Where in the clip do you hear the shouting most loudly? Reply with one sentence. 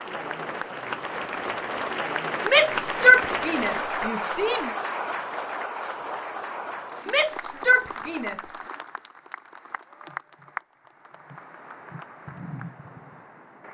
The loudest moment of the shouting is at 3 seconds.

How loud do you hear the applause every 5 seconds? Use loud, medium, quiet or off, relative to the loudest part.
loud, medium, medium.